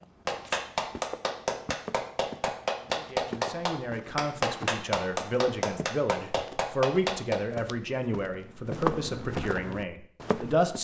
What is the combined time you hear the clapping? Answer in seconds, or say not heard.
7 s.